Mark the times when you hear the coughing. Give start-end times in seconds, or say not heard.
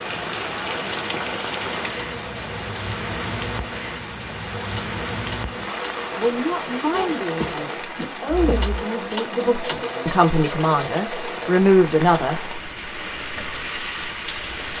6.9-8.8.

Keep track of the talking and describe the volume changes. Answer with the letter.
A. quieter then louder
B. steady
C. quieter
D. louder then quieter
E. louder
E.